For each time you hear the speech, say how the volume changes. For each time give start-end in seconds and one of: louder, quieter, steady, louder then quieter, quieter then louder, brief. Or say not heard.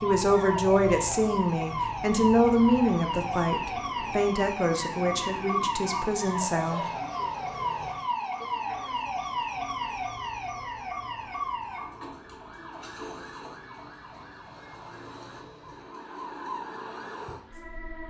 0.0-6.8 quieter.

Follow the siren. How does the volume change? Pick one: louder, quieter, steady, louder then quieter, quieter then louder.
quieter.